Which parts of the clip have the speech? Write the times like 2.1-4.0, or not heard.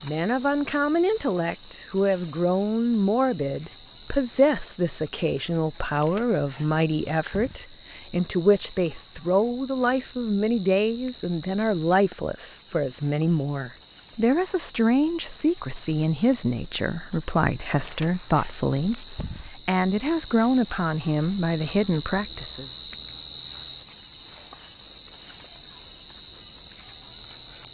0.0-22.7.